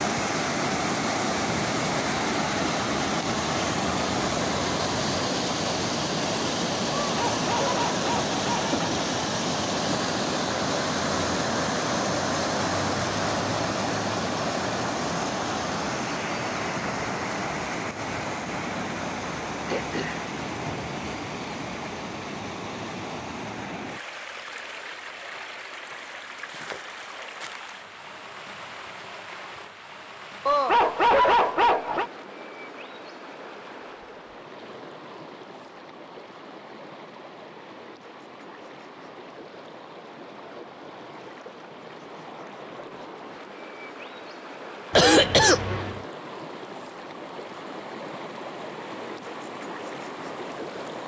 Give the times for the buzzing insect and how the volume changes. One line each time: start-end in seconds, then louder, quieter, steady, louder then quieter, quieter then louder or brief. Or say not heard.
not heard.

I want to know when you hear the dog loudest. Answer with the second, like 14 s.
31 s.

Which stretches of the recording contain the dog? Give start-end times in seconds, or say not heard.
7.0-8.9, 30.4-32.1.